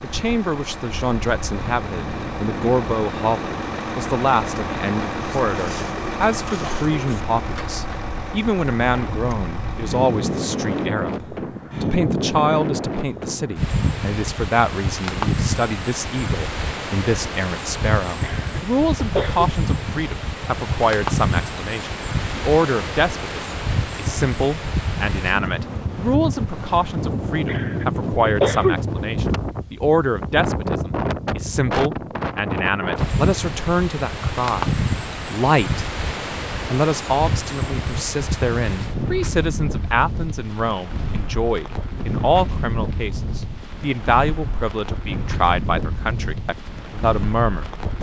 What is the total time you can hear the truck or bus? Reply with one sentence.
You can hear the truck or bus for 11 seconds altogether.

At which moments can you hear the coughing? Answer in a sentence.
You can hear the coughing from 18.2 to 19.5 s and from 27.4 to 28.8 s.